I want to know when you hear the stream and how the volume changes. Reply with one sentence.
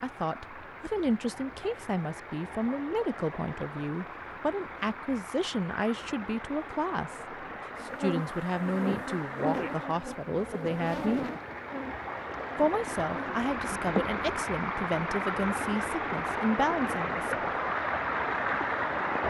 The stream can be heard from 0.0 to 19.2 s, getting louder.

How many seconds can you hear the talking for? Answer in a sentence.
You can hear the talking for 16 seconds altogether.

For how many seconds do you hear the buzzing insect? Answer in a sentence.
You can hear the buzzing insect for 7 seconds altogether.